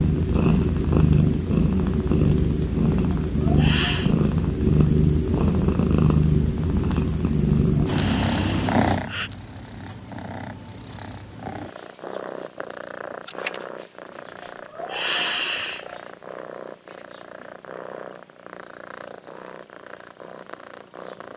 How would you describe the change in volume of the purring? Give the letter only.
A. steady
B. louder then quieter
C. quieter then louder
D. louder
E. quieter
E.